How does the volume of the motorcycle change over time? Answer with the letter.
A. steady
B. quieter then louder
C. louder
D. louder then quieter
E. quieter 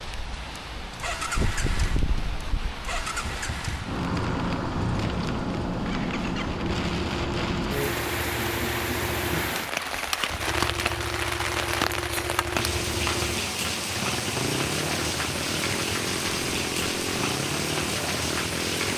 A.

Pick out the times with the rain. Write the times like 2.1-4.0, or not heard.
0.0-18.9.